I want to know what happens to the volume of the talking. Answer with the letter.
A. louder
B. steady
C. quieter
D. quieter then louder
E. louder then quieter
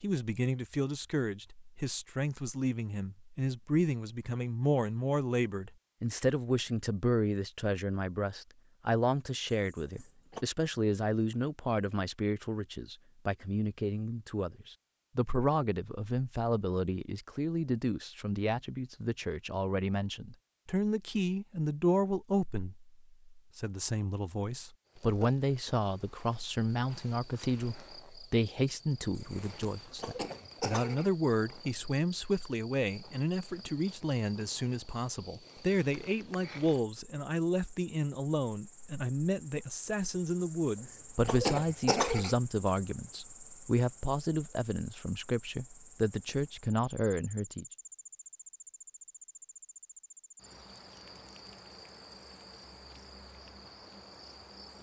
B.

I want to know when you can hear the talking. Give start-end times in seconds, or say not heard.
0.0-47.6.